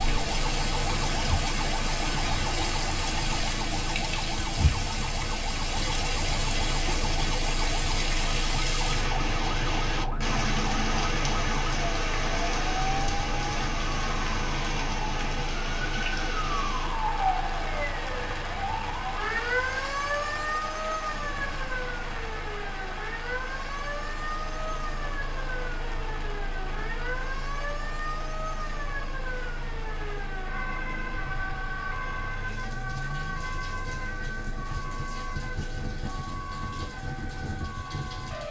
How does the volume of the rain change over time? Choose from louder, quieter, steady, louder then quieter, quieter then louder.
quieter.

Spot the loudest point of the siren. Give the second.
20 s.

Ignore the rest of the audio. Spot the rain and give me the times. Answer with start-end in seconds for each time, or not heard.
0.0-38.4.